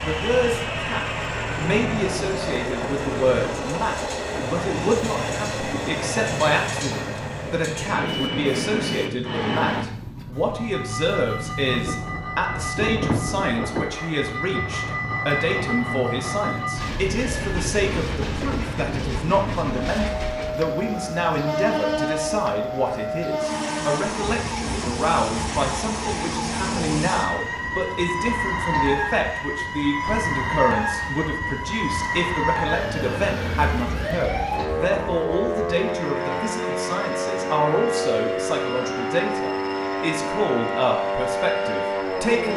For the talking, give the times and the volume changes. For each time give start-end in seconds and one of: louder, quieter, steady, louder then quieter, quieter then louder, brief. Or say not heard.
0.0-42.5 steady.